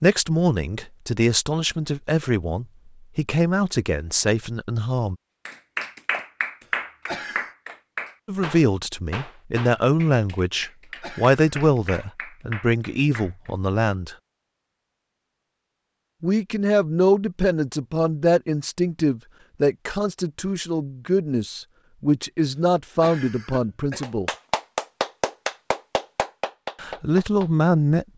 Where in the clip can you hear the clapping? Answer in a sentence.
You can hear the clapping from 5.5 to 13.6 s and from 24.0 to 27.5 s.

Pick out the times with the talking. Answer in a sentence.
You can hear the talking from 0.0 to 5.2 s, from 8.2 to 14.2 s, from 16.2 to 24.3 s and from 26.8 to 28.1 s.